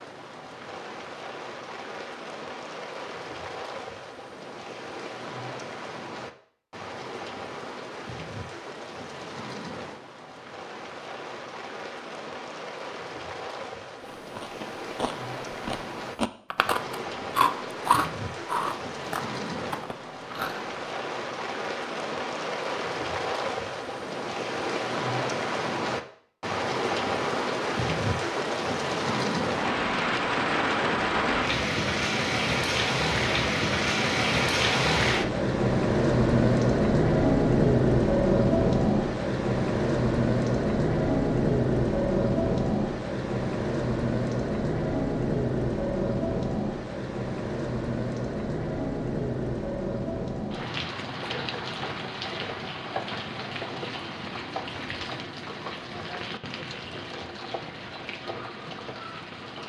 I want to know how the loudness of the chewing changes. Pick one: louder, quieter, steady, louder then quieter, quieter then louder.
louder then quieter.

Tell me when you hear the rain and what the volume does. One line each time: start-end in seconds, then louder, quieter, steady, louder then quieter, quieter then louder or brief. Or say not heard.
0.0-59.6 louder then quieter.